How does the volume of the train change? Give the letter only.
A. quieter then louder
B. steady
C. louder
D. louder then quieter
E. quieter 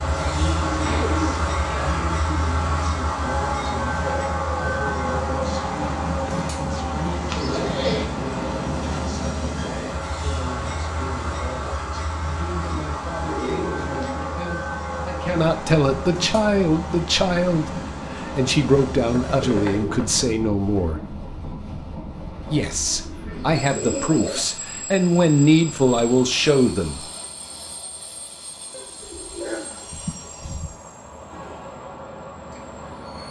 E.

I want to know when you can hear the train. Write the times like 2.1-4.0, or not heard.
0.0-33.2.